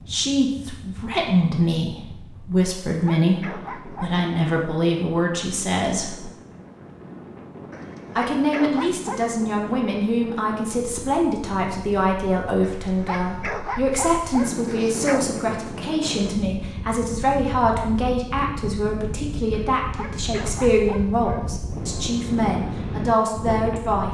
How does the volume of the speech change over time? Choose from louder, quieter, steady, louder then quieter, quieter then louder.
steady.